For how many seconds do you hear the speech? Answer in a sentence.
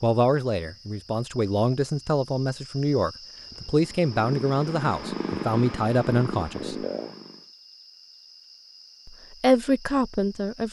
The speech can be heard for 8 seconds in total.